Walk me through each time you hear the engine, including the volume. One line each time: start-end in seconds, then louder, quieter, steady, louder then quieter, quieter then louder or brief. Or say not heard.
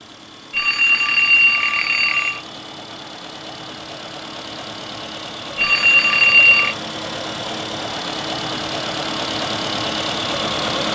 0.0-10.8 louder.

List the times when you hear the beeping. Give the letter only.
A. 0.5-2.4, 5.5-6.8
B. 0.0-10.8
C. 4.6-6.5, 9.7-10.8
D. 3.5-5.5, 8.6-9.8
A.